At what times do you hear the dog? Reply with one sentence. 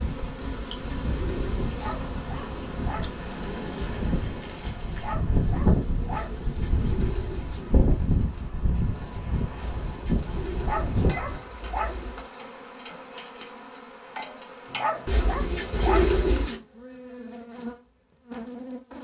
You can hear the dog from 1.7 to 3.1 s, from 4.9 to 6.3 s, from 10.6 to 11.9 s and from 14.7 to 16.2 s.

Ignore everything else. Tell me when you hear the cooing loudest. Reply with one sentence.
The volume of the cooing peaks at 16 seconds.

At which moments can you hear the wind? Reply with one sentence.
You can hear the wind from 0.0 to 11.4 s.